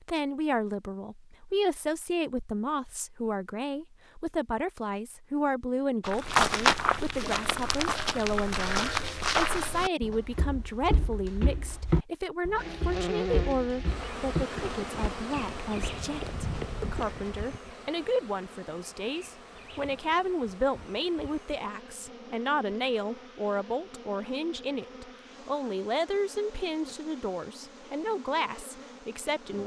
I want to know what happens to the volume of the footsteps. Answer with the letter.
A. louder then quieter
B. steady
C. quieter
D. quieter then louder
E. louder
C.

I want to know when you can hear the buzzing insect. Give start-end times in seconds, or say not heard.
12.6-29.6.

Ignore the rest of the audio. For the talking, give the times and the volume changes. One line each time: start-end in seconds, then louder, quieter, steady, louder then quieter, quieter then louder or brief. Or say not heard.
0.0-29.6 steady.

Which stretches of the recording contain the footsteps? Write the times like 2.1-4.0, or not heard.
6.0-17.6.